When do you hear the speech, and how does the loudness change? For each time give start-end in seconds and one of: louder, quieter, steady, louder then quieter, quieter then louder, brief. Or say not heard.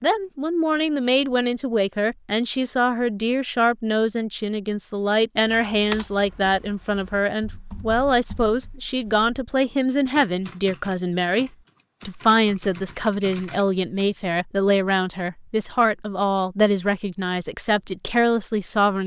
0.0-19.0 steady.